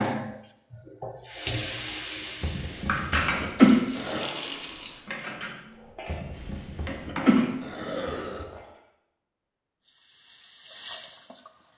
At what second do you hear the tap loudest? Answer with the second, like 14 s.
2 s.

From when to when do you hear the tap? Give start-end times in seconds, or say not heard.
0.0-5.1, 9.8-11.7.